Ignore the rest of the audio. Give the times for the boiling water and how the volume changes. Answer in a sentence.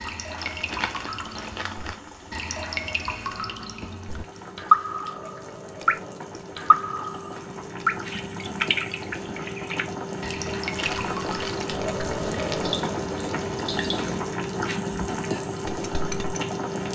The boiling water can be heard from 0.0 to 16.9 s, getting louder.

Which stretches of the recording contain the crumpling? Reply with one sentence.
You can hear the crumpling from 0.3 to 2.0 s and from 10.8 to 12.8 s.